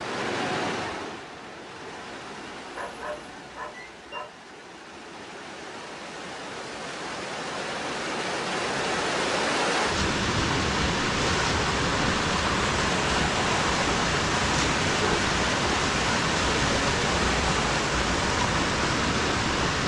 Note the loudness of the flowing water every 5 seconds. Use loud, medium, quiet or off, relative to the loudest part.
medium, medium, loud, loud.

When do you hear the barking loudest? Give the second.
15 s.